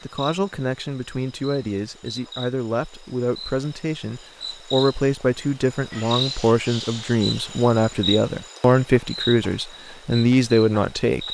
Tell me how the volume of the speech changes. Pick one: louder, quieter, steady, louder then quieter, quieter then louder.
louder.